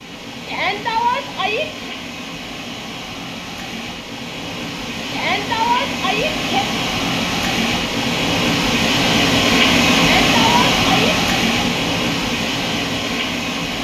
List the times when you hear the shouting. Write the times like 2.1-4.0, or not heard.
0.5-1.9, 5.1-6.7, 9.9-11.2.